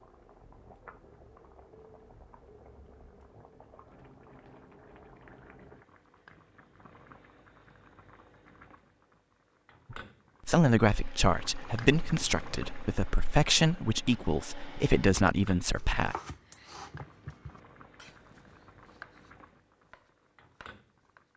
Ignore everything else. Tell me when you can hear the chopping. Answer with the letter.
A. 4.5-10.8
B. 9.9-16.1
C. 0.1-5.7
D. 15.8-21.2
D.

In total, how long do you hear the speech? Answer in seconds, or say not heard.
6 s.